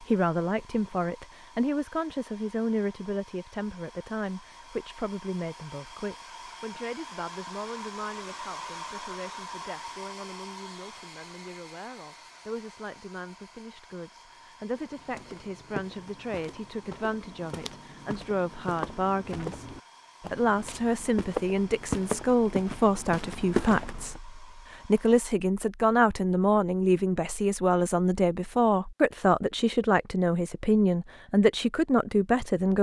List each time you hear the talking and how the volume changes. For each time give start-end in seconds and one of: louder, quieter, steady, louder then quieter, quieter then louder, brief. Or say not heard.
0.0-32.7 quieter then louder.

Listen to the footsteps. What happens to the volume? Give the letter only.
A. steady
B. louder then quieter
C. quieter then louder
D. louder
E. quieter
D.